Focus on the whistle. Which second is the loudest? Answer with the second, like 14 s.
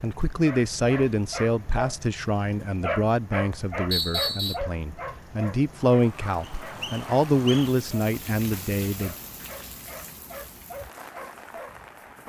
4 s.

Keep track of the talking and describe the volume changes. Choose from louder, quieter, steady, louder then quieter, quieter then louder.
quieter then louder.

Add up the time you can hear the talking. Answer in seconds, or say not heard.
9 s.